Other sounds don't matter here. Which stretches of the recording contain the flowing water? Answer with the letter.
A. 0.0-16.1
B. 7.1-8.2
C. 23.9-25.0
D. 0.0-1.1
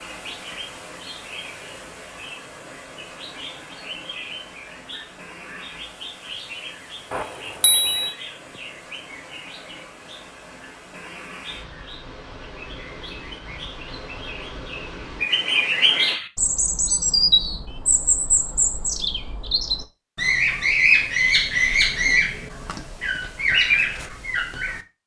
A.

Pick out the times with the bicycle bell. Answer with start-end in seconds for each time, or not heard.
7.1-8.2.